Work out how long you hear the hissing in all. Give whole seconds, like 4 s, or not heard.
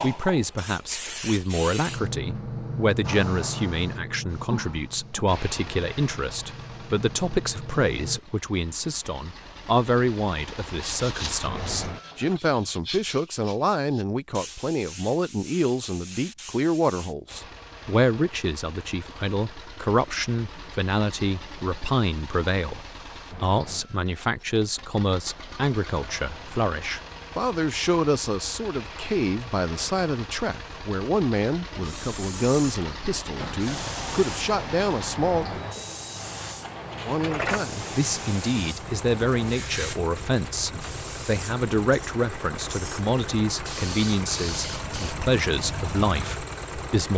22 s.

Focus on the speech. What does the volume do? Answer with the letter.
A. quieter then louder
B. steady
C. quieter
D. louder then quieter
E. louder
B.